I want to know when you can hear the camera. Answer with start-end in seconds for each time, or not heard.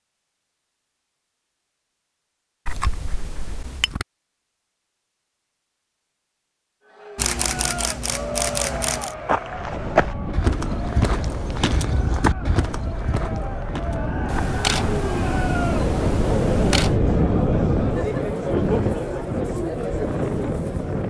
2.6-4.0, 7.2-9.2, 14.2-16.9.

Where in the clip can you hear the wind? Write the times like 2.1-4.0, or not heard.
9.4-21.0.